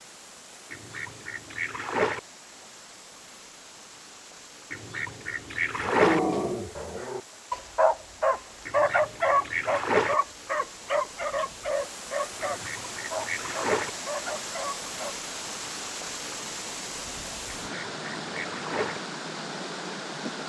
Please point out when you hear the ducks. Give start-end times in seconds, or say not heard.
0.7-2.2, 4.7-6.2, 8.7-10.2, 12.4-13.9, 17.6-19.0.